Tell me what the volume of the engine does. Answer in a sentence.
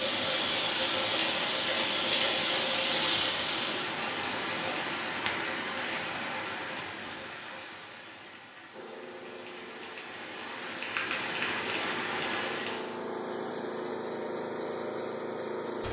The loudness of the engine goes up.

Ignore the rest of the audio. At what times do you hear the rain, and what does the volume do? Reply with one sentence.
You can hear the rain from 0.0 to 12.9 s, getting quieter then louder.